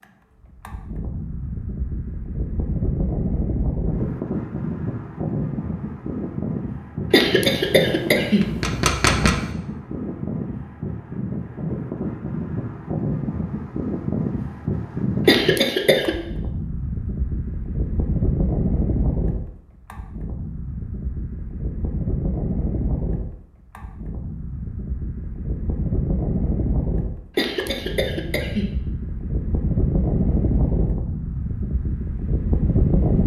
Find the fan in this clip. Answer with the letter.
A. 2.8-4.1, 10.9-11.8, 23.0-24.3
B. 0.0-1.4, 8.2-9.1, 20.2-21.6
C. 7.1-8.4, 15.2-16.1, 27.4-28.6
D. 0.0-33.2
D.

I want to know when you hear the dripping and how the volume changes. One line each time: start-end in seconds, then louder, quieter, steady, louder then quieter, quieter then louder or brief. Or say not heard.
not heard.